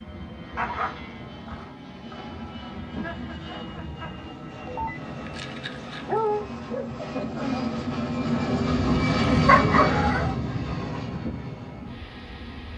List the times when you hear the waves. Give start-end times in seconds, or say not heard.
not heard.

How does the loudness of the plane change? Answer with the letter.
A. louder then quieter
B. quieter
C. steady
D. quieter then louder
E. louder
A.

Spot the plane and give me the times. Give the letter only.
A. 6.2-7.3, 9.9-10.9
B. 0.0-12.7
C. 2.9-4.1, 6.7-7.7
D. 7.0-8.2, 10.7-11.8
B.